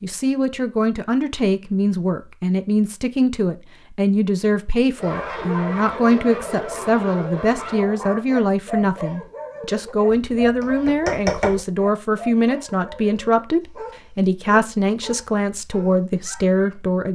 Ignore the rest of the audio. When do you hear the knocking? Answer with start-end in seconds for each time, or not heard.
10.1-11.6.